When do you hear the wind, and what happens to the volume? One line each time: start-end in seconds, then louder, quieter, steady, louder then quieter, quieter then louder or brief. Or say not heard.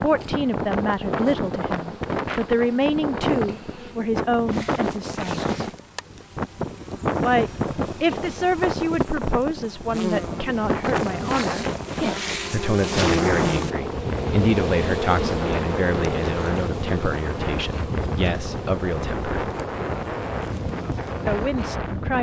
0.0-22.1 steady.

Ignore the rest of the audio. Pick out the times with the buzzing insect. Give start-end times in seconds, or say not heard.
0.0-22.1.